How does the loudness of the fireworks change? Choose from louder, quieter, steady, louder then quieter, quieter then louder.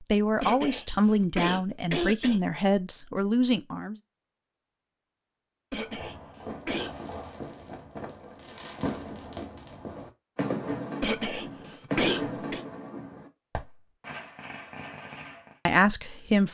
louder then quieter.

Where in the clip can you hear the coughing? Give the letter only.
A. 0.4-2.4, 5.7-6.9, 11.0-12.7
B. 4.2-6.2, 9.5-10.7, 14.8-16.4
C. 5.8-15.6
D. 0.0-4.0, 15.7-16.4
A.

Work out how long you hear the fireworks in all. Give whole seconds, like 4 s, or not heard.
10 s.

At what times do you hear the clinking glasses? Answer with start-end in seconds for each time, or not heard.
not heard.